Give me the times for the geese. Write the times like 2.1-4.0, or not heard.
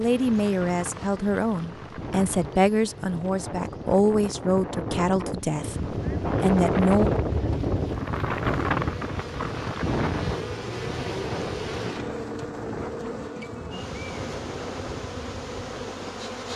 not heard.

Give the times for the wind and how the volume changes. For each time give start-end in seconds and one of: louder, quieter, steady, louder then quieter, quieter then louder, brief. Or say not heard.
0.0-16.2 louder then quieter.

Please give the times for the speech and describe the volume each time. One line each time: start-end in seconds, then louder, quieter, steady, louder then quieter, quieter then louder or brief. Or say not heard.
0.0-7.1 steady.